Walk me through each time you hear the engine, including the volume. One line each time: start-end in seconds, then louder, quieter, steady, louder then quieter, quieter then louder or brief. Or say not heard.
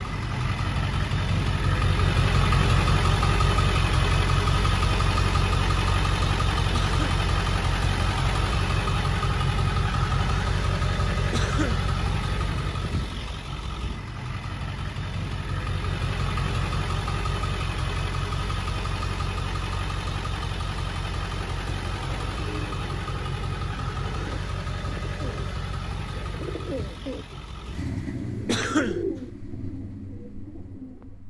0.0-31.2 quieter.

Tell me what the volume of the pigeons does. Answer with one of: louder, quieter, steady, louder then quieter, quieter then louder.
louder then quieter.